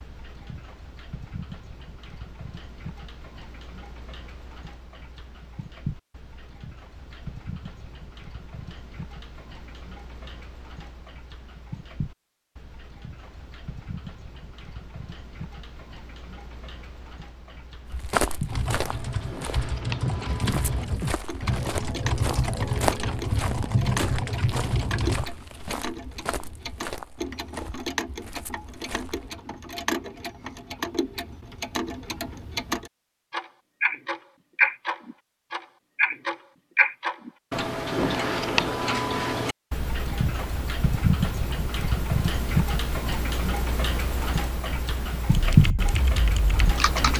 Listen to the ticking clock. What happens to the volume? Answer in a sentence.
The loudness of the ticking clock goes up.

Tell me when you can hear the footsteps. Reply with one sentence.
The footsteps can be heard from 17.9 to 29.3 s.